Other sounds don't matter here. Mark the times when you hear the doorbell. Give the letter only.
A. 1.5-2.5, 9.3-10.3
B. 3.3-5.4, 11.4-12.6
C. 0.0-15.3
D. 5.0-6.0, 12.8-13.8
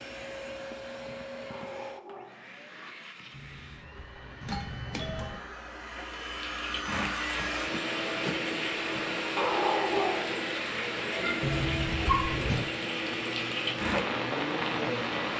B.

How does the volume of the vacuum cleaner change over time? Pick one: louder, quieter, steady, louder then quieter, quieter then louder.
louder.